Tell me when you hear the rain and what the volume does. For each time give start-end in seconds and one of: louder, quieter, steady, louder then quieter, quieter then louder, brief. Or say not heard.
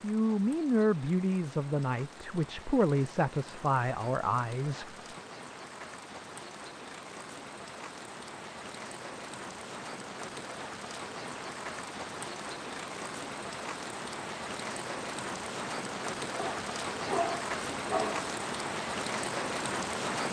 0.0-20.2 louder.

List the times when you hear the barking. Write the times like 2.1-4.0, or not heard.
16.4-18.4.